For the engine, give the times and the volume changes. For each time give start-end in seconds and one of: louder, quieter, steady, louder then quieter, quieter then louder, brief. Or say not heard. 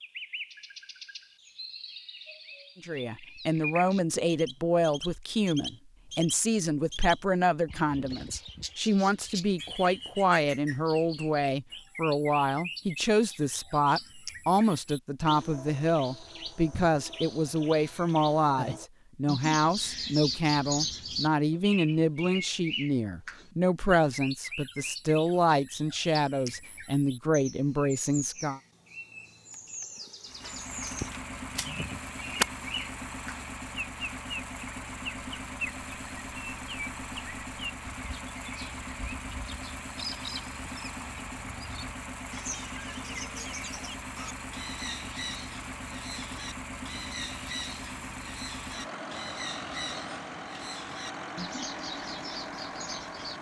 30.2-53.3 steady.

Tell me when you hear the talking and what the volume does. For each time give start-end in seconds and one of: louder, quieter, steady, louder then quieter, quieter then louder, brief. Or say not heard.
2.8-28.6 steady.